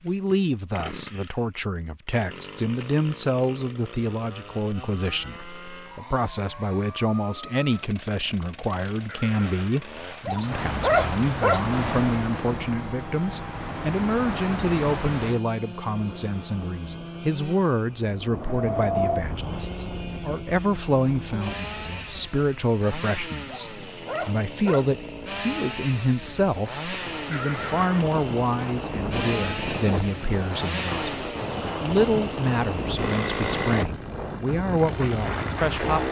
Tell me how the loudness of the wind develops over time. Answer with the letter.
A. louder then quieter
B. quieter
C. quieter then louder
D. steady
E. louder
C.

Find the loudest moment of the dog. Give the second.
11 s.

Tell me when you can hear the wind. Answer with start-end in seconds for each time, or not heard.
10.4-36.0.